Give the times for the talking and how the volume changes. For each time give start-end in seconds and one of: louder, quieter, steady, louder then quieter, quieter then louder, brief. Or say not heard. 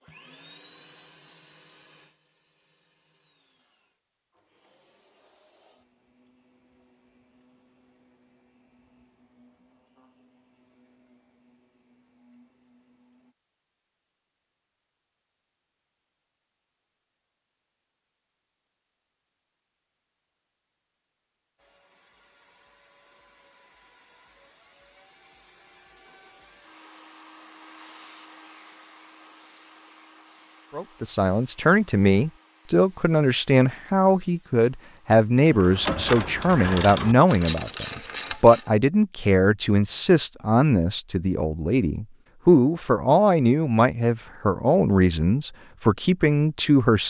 30.8-47.0 steady.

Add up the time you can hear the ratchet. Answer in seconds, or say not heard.
3 s.